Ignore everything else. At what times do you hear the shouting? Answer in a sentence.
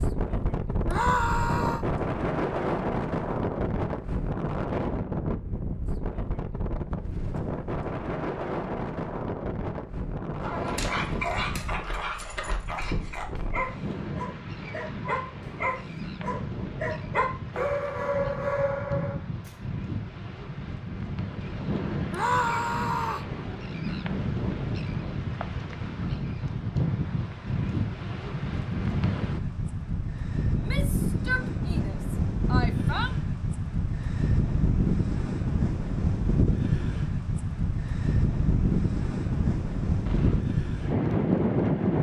You can hear the shouting from 0.8 to 1.9 s, from 22.1 to 23.3 s and from 30.6 to 33.1 s.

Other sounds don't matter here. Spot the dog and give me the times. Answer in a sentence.
The dog can be heard from 10.4 to 19.5 s.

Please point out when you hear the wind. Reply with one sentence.
You can hear the wind from 0.0 to 41.9 s.